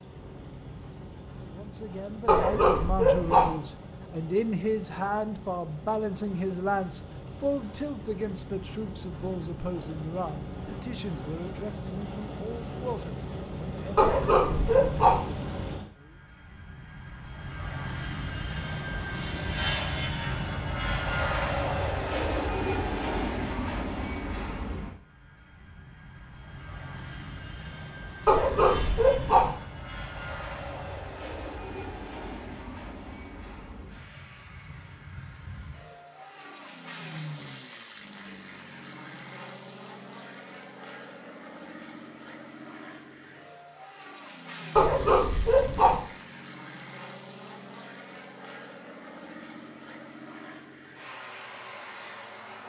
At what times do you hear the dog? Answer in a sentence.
The dog can be heard from 2.2 to 3.5 s, from 13.9 to 15.2 s, from 28.2 to 29.6 s and from 44.8 to 46.0 s.